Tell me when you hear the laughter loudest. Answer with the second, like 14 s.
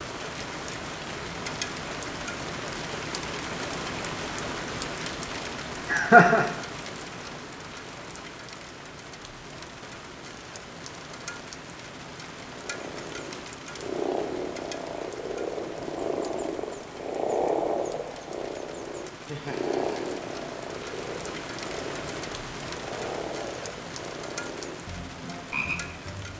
6 s.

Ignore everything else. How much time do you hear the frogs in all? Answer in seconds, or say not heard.
14 s.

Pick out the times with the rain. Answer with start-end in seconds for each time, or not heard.
0.0-26.3.